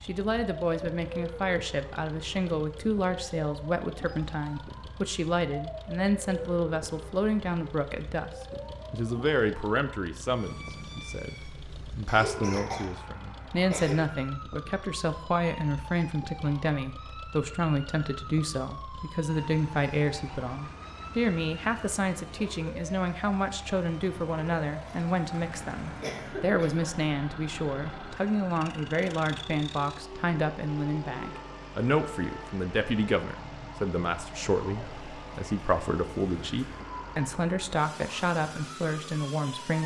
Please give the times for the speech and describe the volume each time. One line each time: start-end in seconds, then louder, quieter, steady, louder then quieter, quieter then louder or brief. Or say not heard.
0.0-8.3 steady
8.9-39.8 steady.